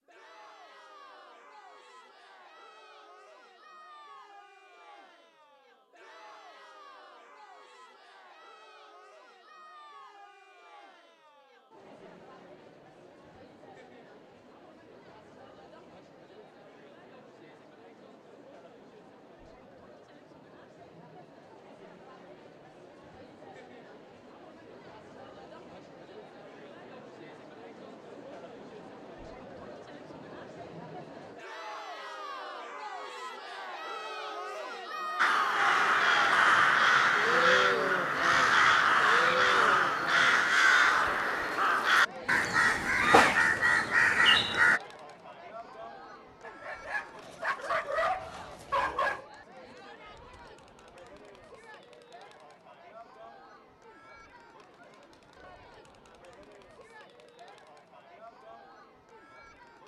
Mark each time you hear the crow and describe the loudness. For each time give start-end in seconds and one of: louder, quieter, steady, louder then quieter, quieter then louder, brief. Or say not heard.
35.1-44.8 steady.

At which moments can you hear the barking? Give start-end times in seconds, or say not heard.
46.4-49.2.